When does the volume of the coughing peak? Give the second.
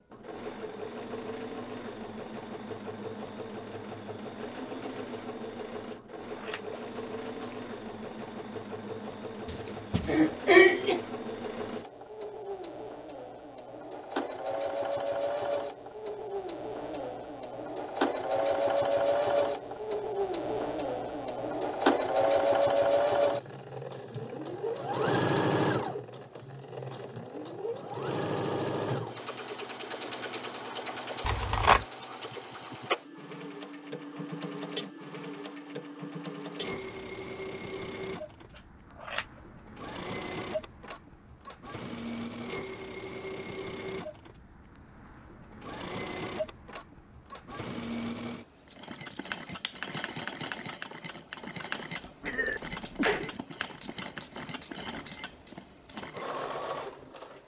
11 s.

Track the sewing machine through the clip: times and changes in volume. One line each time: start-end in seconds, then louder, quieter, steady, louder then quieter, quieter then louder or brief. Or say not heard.
0.1-57.4 louder then quieter.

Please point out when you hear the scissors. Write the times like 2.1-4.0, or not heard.
5.9-7.5, 31.2-31.9, 38.5-39.2.